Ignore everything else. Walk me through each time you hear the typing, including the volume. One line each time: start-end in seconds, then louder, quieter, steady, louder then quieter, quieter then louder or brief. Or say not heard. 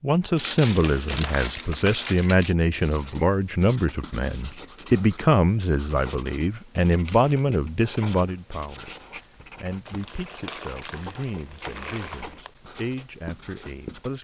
not heard.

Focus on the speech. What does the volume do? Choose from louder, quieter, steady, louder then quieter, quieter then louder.
quieter.